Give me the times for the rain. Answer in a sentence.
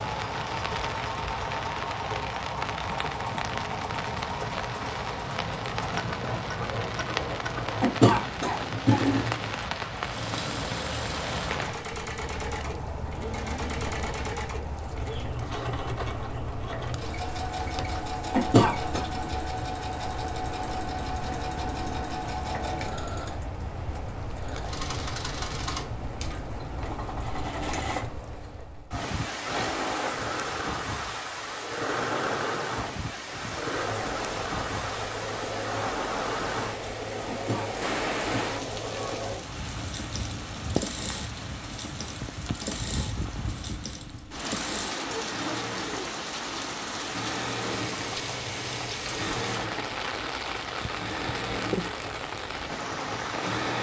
The rain can be heard from 0.0 to 53.7 s.